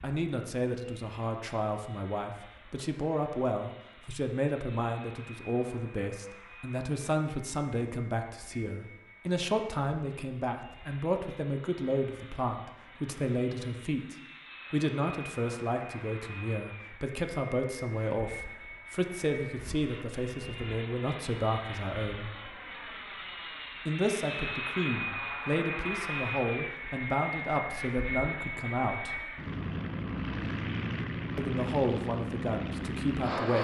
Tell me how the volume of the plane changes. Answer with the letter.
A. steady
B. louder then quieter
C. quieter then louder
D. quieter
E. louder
E.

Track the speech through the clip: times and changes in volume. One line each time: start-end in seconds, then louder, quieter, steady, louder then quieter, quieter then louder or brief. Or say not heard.
0.0-22.3 steady
23.9-29.2 steady
31.4-33.5 brief.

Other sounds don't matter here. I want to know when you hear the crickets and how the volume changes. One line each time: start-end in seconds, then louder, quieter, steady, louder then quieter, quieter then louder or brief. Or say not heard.
not heard.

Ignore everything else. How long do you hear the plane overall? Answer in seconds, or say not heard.
33 s.